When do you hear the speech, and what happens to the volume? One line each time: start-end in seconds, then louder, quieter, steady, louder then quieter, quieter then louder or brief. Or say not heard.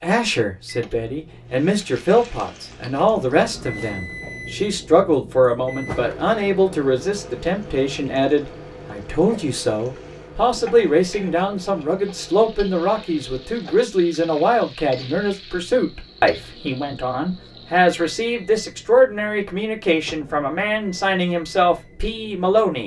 0.0-22.8 steady.